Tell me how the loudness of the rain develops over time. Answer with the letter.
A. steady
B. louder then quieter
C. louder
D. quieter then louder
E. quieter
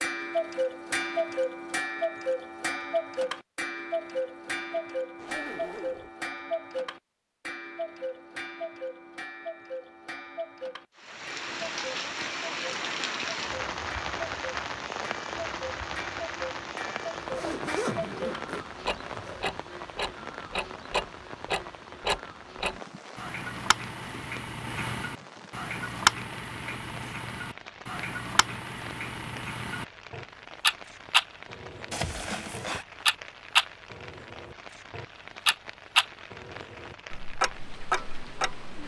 E.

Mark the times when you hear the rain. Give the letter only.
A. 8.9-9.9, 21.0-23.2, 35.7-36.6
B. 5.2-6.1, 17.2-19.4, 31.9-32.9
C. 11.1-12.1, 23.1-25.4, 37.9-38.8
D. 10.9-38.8
D.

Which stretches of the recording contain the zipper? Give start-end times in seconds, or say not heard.
5.2-6.1, 17.2-19.4, 31.9-32.9.